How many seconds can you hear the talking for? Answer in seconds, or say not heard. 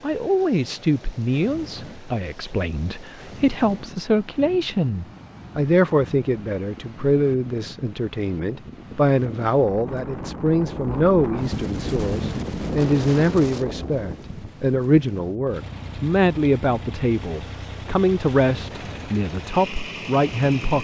21 s.